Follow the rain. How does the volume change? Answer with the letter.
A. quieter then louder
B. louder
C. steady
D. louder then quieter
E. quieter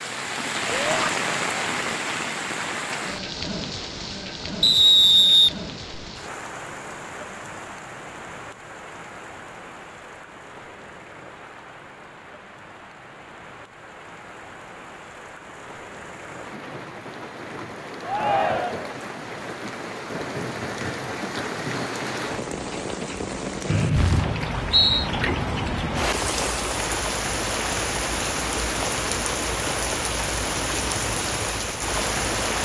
A.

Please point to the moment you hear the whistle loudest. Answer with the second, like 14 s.
5 s.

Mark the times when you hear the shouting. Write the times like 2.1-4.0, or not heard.
0.7-1.1, 18.1-18.9.